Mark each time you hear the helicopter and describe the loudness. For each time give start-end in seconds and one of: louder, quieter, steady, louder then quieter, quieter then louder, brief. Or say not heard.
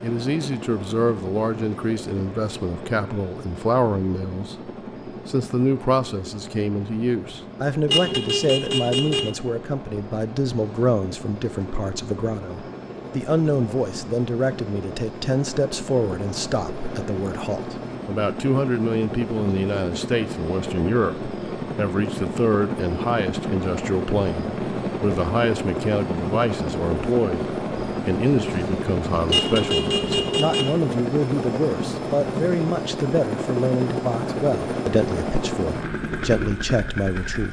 0.0-37.4 louder.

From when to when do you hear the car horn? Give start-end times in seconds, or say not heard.
7.8-9.3, 29.2-30.8.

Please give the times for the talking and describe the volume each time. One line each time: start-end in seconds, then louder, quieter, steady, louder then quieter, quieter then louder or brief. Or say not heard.
0.0-37.4 steady.